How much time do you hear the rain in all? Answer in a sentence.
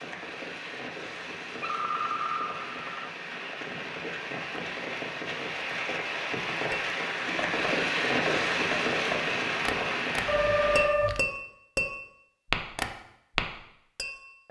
You can hear the rain for 11 seconds altogether.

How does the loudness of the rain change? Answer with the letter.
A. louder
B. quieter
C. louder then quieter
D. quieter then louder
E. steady
A.